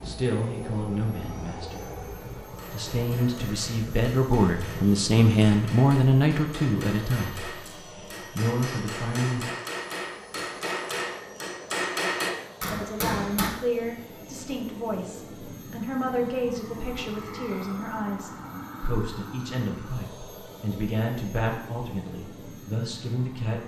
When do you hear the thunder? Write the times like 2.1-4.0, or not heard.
not heard.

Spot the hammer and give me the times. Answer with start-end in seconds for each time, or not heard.
2.5-13.5.